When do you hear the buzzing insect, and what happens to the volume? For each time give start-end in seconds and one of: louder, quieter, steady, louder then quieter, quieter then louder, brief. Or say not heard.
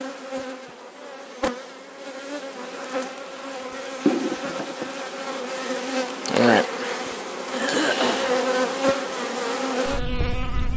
0.0-10.7 louder.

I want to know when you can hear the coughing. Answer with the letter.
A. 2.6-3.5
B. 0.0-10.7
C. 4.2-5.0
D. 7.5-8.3
D.